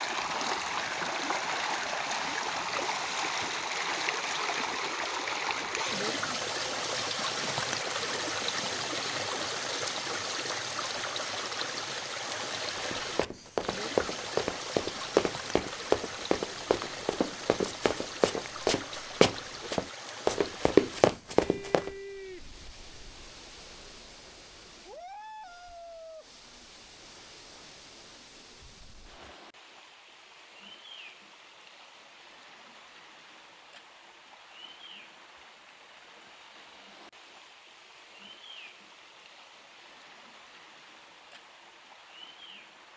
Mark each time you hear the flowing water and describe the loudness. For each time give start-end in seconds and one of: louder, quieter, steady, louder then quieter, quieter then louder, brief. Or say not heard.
0.0-42.9 quieter.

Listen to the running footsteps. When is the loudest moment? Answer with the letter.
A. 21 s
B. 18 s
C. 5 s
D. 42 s
A.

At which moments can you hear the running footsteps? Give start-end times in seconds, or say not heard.
12.8-21.9.